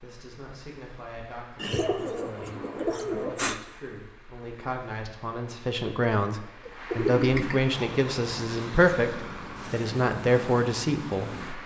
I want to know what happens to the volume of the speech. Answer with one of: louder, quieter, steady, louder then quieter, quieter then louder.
louder.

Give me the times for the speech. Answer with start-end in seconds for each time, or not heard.
0.0-11.3.